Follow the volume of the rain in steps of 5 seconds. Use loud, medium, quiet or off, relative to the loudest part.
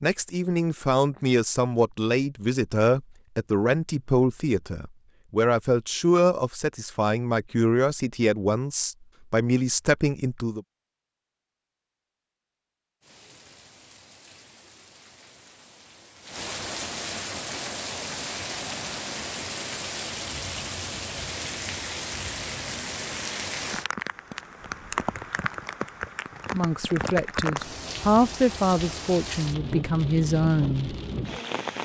off, off, quiet, loud, loud, loud, loud.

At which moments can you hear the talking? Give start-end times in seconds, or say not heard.
0.0-10.6, 26.5-30.9.